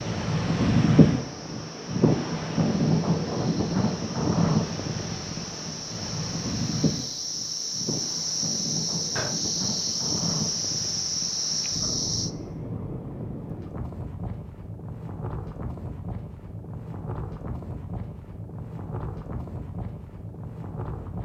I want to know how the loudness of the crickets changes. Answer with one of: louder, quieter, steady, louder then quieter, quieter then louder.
louder.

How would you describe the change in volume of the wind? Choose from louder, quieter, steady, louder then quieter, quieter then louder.
quieter.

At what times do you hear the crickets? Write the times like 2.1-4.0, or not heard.
0.0-12.3.